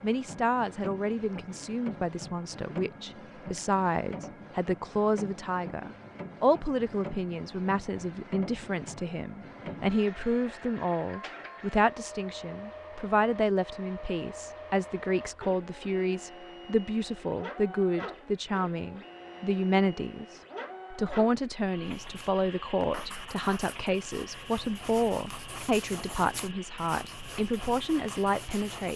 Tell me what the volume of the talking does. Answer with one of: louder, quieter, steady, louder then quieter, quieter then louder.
steady.